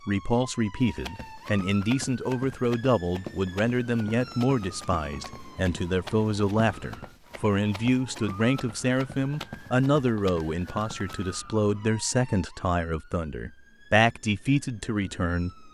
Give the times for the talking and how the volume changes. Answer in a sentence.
You can hear the talking from 0.1 to 15.6 s, at a steady volume.